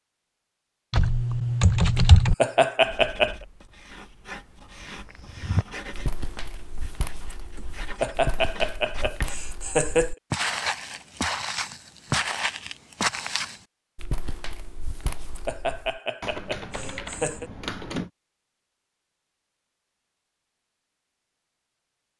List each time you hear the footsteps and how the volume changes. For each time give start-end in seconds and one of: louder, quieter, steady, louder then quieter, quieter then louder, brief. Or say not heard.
5.0-16.0 louder then quieter.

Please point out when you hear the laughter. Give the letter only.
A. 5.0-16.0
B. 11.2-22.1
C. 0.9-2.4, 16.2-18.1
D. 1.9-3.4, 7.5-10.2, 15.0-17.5
D.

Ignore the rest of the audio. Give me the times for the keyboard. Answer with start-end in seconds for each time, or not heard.
0.9-2.4, 16.2-18.1.